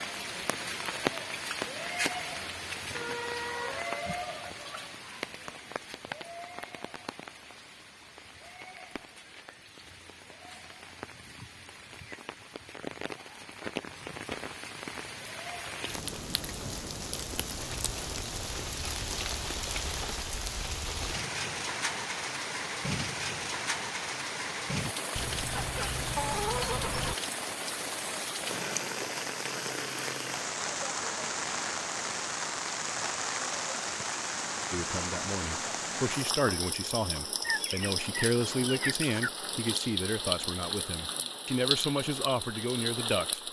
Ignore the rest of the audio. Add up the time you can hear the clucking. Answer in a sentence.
The clucking can be heard for 6 seconds in total.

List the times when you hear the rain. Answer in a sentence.
You can hear the rain from 0.0 to 43.4 s.